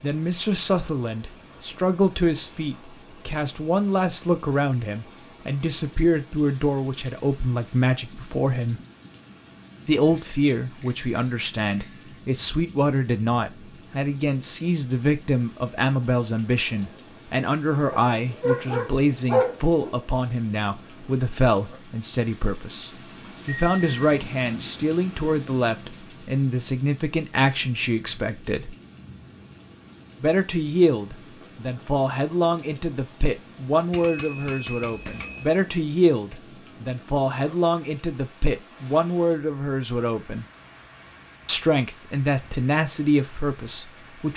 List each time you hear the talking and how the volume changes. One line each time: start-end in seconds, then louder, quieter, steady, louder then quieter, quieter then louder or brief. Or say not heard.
0.0-8.8 steady
9.8-28.8 steady
30.2-40.5 steady
41.5-44.3 brief.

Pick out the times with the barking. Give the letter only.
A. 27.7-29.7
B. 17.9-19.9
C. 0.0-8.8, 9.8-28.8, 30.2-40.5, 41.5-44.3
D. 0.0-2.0
B.